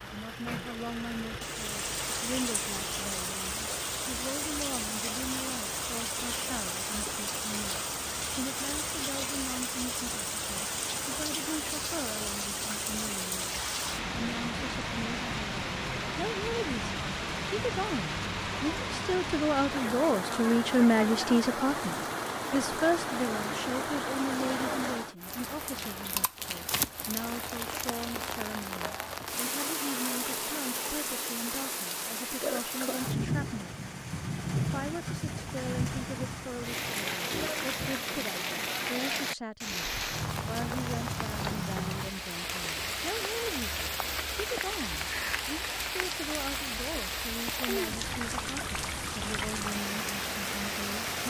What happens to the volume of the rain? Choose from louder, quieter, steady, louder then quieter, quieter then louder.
steady.